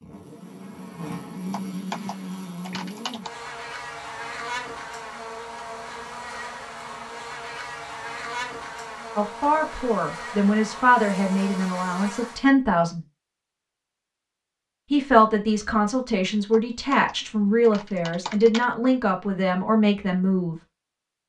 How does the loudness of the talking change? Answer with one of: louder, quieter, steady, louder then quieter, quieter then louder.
steady.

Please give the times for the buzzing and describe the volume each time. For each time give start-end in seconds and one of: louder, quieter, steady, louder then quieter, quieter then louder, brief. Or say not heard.
0.0-12.4 steady.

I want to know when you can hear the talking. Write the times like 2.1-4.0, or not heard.
9.2-13.0, 14.9-20.6.